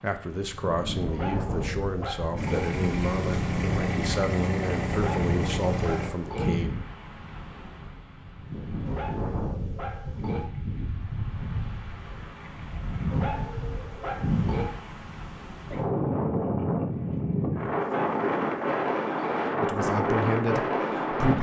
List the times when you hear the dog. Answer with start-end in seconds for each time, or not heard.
1.1-2.7, 4.9-6.5, 8.8-10.4, 13.1-14.7, 17.8-19.4.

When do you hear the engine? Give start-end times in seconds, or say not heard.
2.4-6.1.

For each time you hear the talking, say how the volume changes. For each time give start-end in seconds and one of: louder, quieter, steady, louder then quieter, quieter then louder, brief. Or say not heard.
0.0-6.7 steady
19.6-21.3 brief.